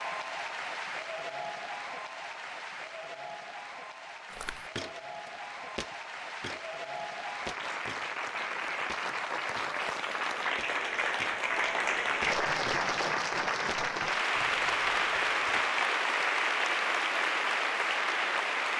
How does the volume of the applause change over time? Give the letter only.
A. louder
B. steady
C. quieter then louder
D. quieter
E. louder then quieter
A.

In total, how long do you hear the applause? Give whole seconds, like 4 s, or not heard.
19 s.